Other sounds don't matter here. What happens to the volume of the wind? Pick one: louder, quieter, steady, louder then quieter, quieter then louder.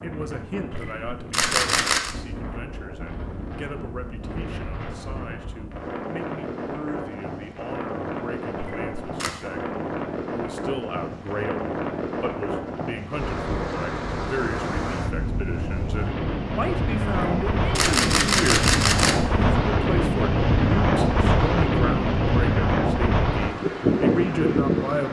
louder.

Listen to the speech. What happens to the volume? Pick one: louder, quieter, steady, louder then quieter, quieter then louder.
louder.